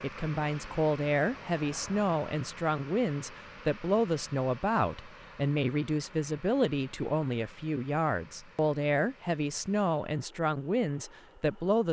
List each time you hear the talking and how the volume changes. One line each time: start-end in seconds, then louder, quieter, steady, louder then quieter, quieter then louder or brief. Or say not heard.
0.0-11.8 steady.